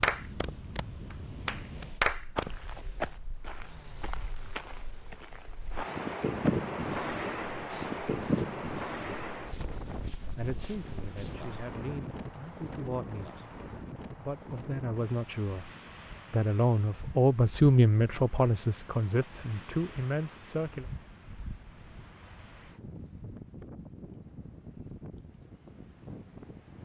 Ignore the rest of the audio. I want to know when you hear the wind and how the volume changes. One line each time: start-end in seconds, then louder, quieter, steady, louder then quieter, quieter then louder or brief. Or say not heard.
0.0-26.8 louder then quieter.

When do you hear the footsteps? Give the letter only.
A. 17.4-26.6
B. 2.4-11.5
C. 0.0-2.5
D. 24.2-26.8
B.